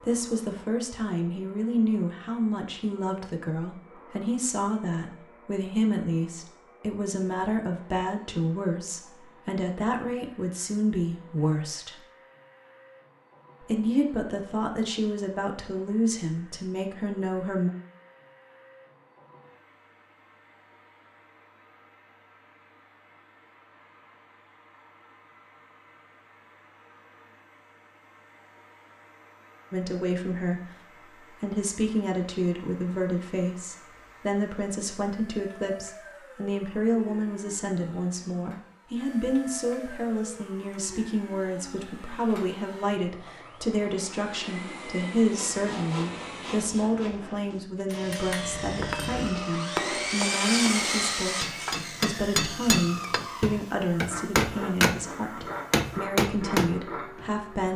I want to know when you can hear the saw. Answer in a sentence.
The saw can be heard from 45.2 to 57.3 s.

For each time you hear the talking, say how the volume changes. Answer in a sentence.
You can hear the talking from 0.0 to 11.9 s, at a steady volume; from 13.6 to 17.7 s, at a steady volume; briefly from 29.7 to 30.6 s; and from 31.4 to 57.7 s, at a steady volume.